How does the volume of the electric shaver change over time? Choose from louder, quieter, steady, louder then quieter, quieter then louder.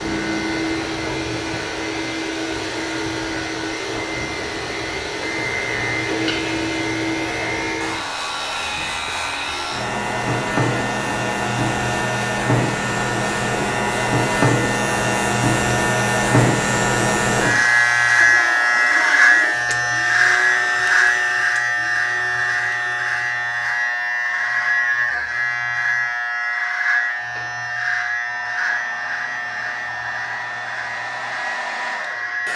louder then quieter.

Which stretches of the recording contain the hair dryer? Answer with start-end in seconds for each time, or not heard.
0.0-32.5.